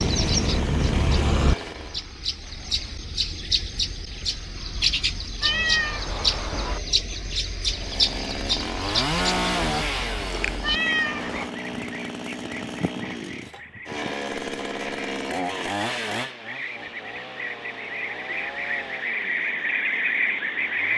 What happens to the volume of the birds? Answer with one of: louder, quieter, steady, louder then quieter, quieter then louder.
quieter then louder.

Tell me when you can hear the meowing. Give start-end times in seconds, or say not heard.
5.4-6.8, 10.6-11.5.